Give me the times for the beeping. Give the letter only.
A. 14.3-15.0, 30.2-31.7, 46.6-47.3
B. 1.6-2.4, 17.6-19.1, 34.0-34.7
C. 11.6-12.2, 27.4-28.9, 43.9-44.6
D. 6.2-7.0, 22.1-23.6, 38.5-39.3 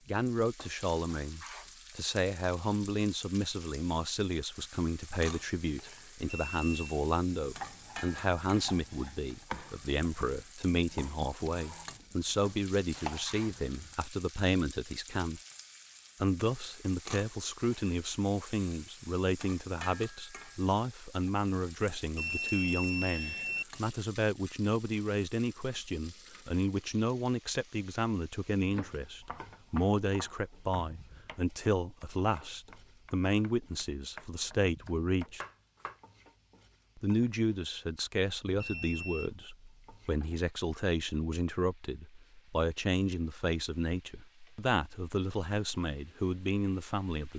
D.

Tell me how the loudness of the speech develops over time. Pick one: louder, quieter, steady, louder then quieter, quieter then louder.
steady.